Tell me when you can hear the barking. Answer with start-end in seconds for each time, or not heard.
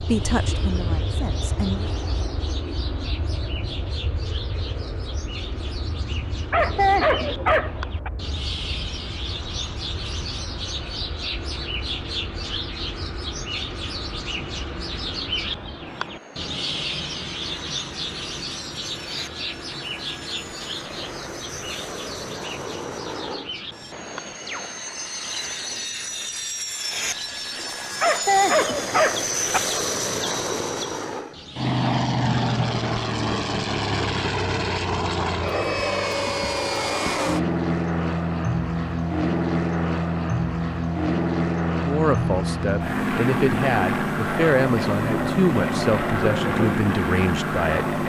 6.1-8.1, 28.0-29.6.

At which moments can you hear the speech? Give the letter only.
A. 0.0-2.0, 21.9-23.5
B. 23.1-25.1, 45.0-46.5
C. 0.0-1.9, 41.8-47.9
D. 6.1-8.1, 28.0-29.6
C.